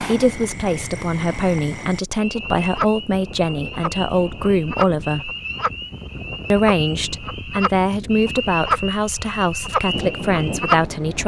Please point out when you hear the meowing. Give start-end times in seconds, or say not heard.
not heard.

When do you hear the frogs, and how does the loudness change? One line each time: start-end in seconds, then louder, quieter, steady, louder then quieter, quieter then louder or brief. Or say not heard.
0.0-11.2 louder.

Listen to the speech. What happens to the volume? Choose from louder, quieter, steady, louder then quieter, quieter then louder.
steady.